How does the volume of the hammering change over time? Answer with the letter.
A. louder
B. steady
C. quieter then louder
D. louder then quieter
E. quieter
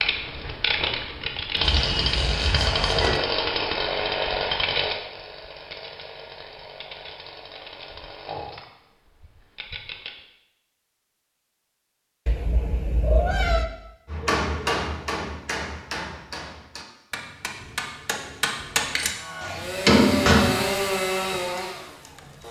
C.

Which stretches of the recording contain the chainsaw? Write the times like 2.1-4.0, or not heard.
0.0-10.2, 19.1-22.4.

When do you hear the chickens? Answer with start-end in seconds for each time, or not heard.
not heard.